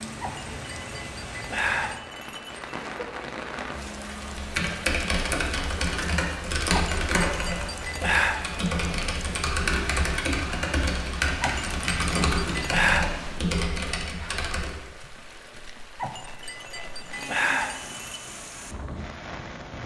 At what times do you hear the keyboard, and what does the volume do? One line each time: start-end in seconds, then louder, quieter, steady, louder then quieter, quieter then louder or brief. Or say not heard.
4.2-14.8 steady.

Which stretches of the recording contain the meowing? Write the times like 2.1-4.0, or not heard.
not heard.